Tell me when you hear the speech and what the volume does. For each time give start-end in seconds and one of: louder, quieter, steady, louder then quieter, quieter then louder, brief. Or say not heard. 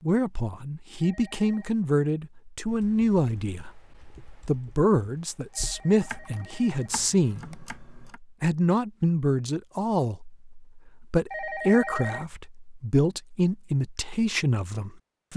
0.0-15.3 steady.